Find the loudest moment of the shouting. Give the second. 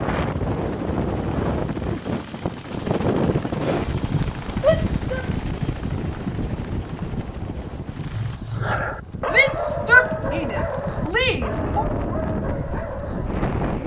10 s.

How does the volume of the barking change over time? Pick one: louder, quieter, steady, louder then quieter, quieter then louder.
quieter.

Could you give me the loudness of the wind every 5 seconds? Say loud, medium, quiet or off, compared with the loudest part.
loud, medium, loud.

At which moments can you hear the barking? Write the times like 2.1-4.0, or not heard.
8.1-13.4.